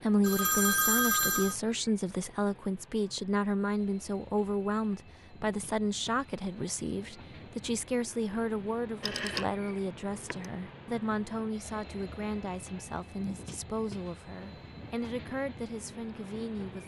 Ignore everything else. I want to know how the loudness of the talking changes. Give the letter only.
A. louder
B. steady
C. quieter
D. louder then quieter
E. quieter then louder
C.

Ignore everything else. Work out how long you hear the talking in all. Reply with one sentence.
The talking can be heard for 17 seconds in total.